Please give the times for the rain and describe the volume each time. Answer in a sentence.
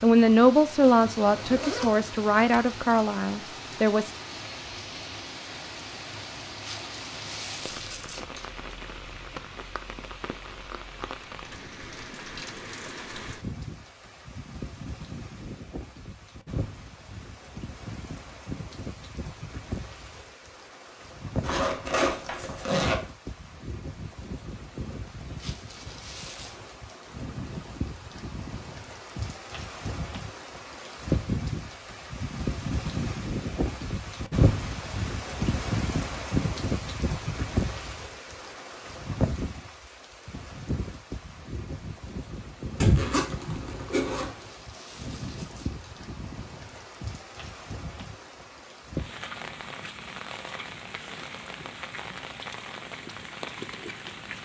You can hear the rain from 0.0 to 54.4 s, getting louder then quieter.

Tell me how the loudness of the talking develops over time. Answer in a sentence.
The loudness of the talking goes down.